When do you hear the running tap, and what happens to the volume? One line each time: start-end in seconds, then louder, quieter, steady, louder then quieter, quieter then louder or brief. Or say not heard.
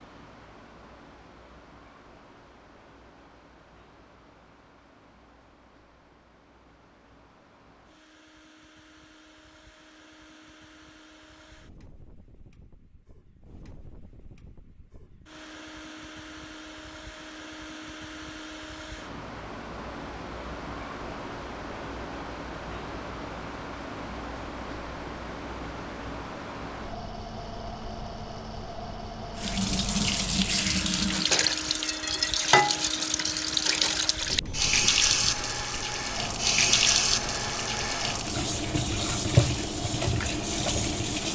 29.4-41.3 steady.